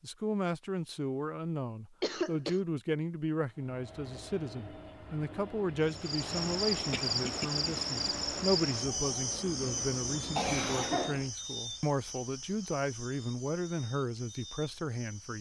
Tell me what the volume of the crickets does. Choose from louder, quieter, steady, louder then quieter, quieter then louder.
quieter.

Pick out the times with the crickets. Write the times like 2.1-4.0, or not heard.
5.8-15.3.